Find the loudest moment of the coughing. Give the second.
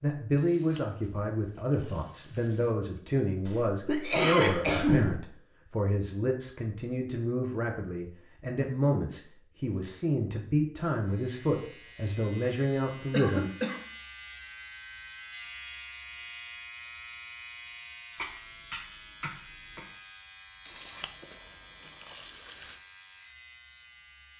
5 s.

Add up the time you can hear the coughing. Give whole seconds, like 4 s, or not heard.
4 s.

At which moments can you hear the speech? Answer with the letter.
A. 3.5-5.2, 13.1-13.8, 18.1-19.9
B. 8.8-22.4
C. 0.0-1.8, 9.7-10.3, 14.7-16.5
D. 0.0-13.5
D.